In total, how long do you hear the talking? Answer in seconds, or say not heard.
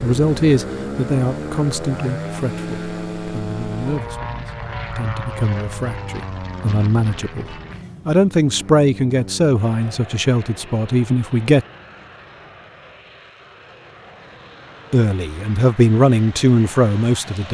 14 s.